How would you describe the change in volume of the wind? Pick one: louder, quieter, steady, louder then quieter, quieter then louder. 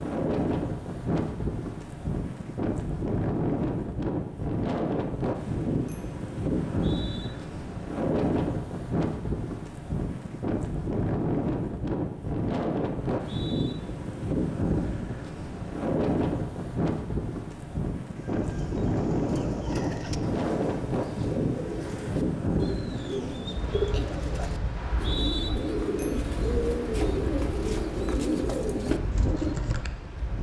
quieter.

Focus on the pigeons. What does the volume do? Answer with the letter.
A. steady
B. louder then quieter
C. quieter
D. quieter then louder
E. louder
E.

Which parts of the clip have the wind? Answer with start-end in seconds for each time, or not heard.
0.0-30.3.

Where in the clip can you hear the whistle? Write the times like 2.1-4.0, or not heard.
6.7-7.3, 13.1-13.8, 24.8-25.5.